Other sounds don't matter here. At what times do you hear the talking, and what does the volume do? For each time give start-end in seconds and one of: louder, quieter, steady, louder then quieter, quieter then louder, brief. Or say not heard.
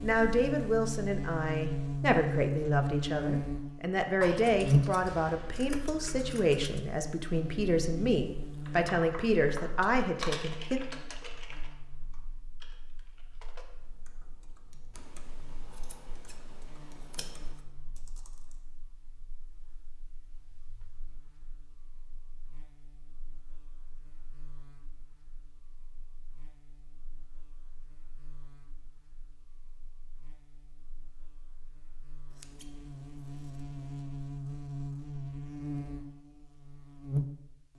0.0-10.8 steady.